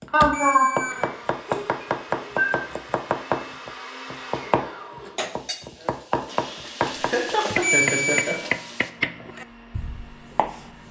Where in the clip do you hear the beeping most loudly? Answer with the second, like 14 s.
8 s.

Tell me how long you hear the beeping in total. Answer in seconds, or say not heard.
2 s.